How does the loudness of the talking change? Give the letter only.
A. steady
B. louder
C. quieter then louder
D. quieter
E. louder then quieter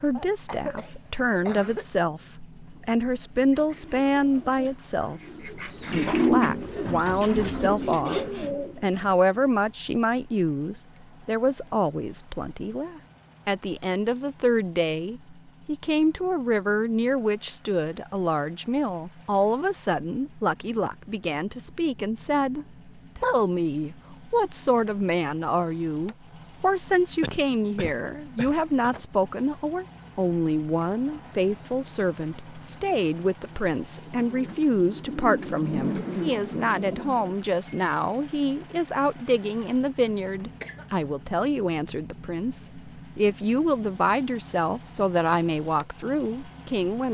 A.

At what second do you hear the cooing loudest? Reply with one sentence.
The loudest moment of the cooing is at 6 seconds.